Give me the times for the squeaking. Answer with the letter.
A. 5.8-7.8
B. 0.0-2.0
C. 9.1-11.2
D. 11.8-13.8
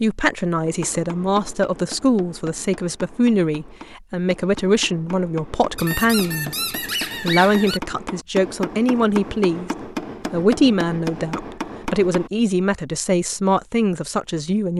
A.